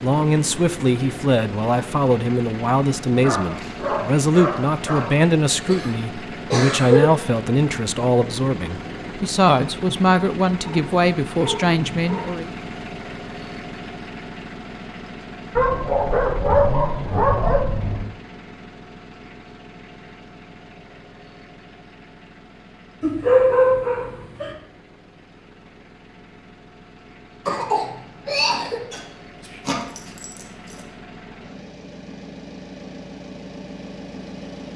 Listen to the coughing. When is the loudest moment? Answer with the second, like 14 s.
7 s.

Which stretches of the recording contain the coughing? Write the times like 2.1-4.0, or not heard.
5.7-7.0, 27.4-28.9.